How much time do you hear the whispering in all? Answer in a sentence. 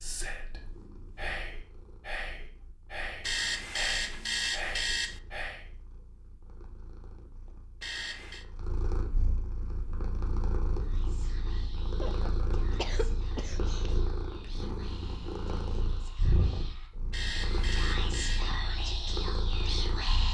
You can hear the whispering for 15 seconds altogether.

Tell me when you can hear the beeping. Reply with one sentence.
You can hear the beeping from 3.2 to 5.2 s, from 7.8 to 8.4 s and from 17.1 to 18.4 s.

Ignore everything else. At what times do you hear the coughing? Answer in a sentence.
You can hear the coughing from 12.0 to 14.0 s.